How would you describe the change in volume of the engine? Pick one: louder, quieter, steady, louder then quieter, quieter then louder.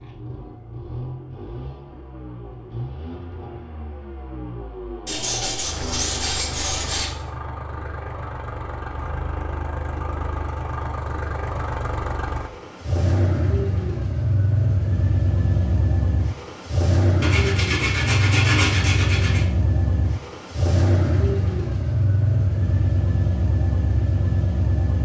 louder.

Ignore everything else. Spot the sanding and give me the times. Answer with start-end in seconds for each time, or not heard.
5.0-7.1, 17.2-19.4.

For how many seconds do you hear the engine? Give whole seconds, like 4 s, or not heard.
25 s.